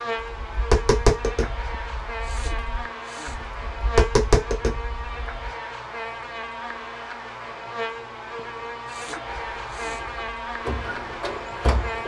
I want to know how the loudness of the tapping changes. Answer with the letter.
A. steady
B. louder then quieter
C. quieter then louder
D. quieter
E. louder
C.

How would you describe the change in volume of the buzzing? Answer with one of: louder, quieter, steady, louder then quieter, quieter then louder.
steady.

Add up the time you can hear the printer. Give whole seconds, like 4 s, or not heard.
3 s.